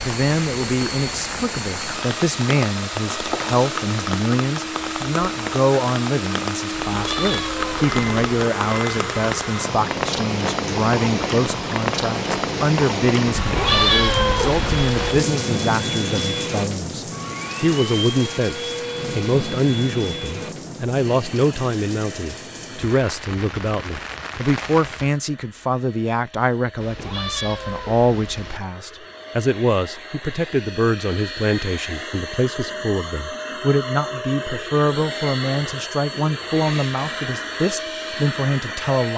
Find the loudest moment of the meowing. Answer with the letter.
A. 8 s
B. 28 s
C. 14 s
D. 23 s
C.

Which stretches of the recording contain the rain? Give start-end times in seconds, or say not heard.
0.0-25.2.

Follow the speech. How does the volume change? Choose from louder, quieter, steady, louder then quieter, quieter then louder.
steady.